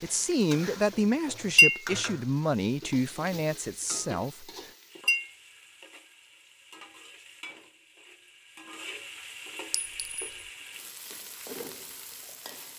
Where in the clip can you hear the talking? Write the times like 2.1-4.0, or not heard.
0.0-4.5.